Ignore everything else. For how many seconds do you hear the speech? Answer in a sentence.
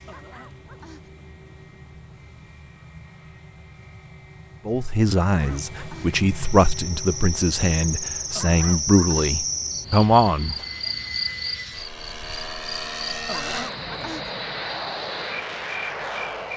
The speech can be heard for 6 seconds in total.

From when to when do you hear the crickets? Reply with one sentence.
You can hear the crickets from 6.4 to 16.5 s.